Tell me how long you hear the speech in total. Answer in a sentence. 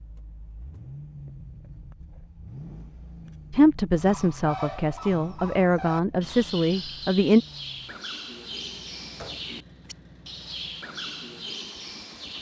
The speech can be heard for 4 seconds in total.